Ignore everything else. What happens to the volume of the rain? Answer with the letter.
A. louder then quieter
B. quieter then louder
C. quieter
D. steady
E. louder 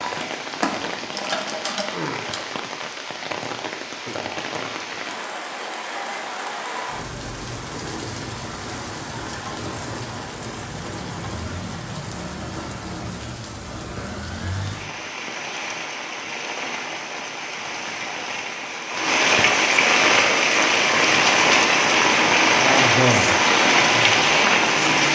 E.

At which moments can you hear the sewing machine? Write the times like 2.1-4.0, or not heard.
0.0-2.5.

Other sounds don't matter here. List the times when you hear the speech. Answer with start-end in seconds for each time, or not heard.
22.6-25.1.